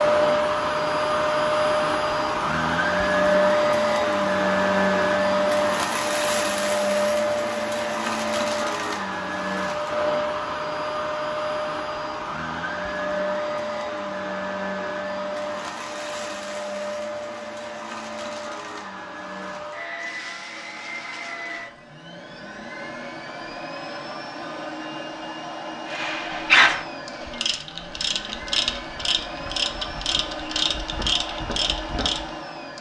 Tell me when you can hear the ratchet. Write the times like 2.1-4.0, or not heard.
25.9-32.3.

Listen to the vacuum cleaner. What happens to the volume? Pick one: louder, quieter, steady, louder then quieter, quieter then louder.
quieter.